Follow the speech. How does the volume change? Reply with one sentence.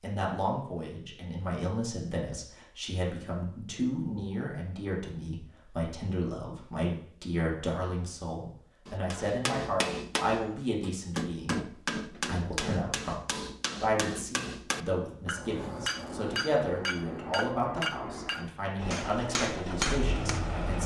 The volume of the speech stays about the same.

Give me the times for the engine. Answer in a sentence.
The engine can be heard from 18.8 to 20.8 s.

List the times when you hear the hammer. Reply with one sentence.
The hammer can be heard from 8.8 to 20.4 s.